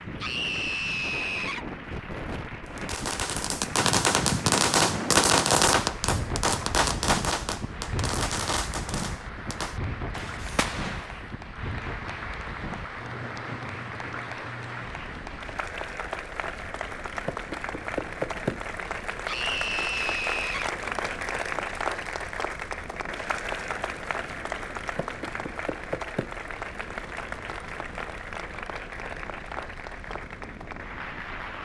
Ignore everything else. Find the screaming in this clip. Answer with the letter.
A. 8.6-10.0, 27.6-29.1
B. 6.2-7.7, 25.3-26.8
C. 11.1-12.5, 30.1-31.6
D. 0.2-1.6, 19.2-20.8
D.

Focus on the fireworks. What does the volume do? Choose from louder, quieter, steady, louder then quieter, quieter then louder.
quieter.